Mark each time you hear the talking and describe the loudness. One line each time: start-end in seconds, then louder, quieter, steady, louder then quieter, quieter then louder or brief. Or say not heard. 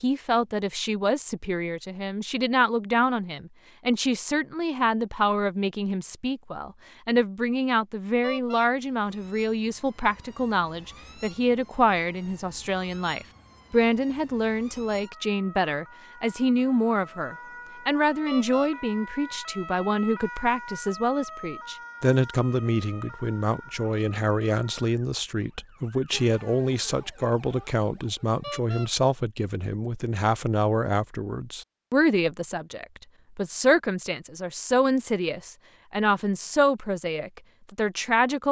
0.0-38.4 steady.